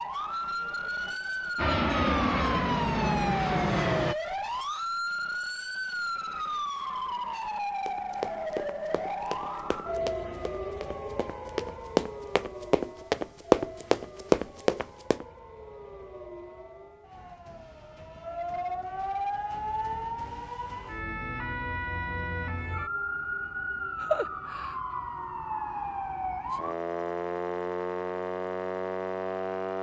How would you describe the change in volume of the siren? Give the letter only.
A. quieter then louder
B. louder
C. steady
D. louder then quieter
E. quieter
A.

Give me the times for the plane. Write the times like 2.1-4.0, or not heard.
1.6-4.2.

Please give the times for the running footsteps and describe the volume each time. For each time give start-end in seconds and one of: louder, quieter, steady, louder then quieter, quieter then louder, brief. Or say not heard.
7.8-15.2 louder.